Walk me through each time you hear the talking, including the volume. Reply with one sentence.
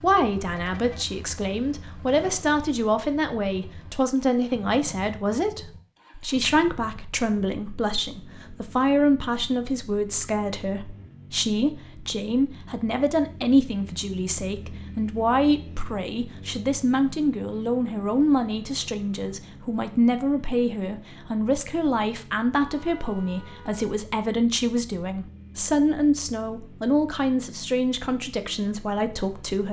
You can hear the talking from 0.0 to 29.6 s, at a steady volume.